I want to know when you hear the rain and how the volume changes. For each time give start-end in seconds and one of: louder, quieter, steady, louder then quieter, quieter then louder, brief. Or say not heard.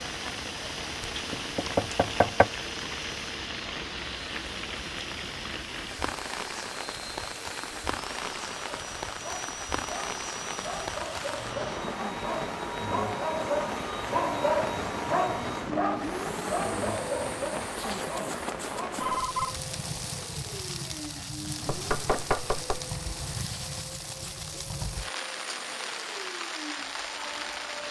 0.0-27.8 steady.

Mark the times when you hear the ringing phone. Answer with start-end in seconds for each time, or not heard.
18.8-19.6.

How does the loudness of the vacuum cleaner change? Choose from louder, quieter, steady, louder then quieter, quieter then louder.
louder then quieter.